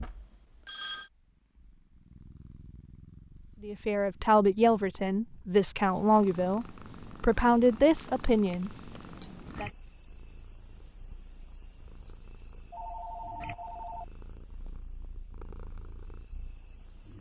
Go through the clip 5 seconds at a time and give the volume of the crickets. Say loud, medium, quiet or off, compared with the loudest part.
off, loud, loud, loud.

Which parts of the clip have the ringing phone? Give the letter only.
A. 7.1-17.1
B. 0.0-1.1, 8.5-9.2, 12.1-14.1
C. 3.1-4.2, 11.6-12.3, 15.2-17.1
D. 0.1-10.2
B.